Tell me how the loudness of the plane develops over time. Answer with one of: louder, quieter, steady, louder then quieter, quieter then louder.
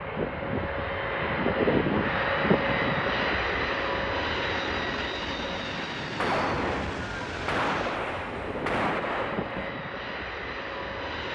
quieter.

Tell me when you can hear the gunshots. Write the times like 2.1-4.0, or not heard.
6.2-9.7.